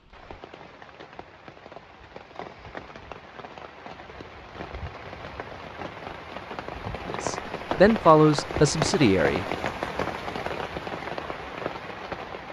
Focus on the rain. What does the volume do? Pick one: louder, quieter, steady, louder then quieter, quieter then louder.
louder.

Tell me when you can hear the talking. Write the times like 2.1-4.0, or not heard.
7.0-9.4.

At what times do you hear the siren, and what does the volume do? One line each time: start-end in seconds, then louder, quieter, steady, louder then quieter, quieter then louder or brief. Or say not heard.
not heard.